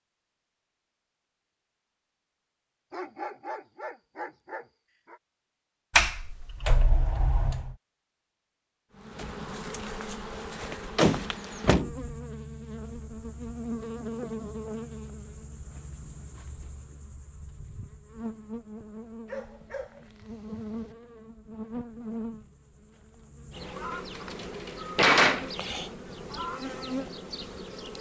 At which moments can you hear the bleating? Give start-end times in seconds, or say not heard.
not heard.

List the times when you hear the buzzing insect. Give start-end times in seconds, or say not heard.
8.9-27.9.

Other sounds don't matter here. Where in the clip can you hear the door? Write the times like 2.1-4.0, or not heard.
6.0-7.8, 10.9-11.9, 23.9-25.5.